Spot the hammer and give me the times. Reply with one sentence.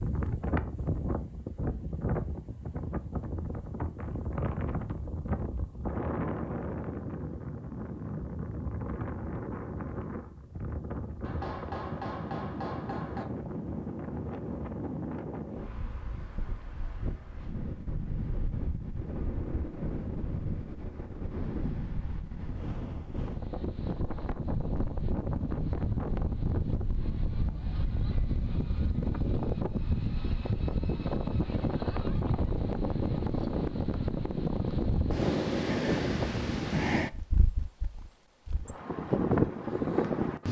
The hammer can be heard from 11.2 to 13.2 s.